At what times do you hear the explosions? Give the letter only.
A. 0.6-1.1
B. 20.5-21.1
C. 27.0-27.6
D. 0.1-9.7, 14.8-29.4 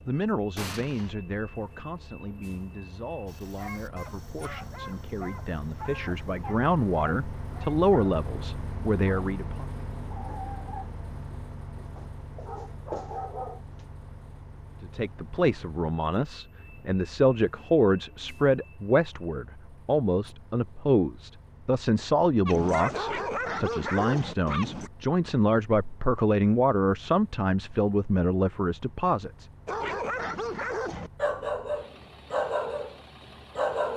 A.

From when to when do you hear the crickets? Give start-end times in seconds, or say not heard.
not heard.